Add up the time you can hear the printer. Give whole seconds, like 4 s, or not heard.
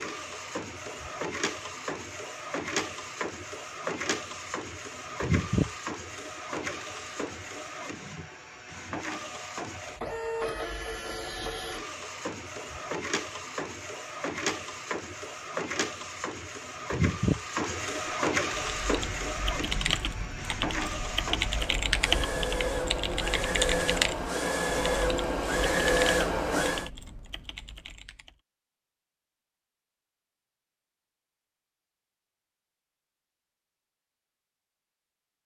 27 s.